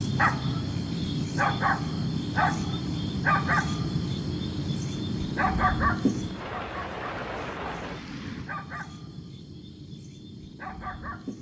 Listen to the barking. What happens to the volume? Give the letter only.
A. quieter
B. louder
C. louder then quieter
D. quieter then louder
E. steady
A.